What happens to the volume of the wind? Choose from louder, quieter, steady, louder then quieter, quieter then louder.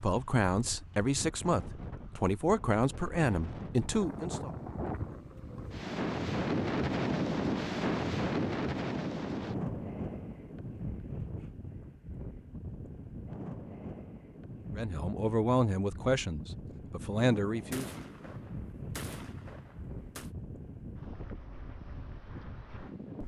louder then quieter.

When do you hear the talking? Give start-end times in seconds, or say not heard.
0.0-4.5, 14.8-17.9.